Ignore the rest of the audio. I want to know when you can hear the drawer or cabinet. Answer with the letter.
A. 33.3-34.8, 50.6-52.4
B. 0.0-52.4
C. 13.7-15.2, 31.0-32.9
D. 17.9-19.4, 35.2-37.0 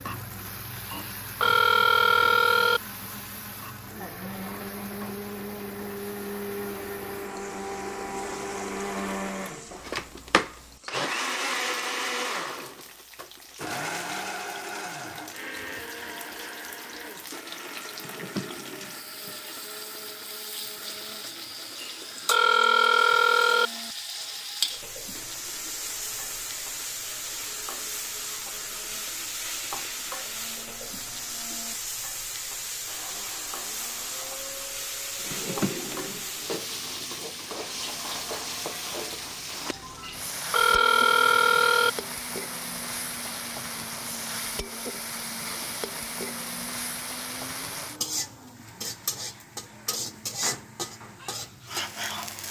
D.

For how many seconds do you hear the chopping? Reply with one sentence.
The chopping can't be heard in this clip.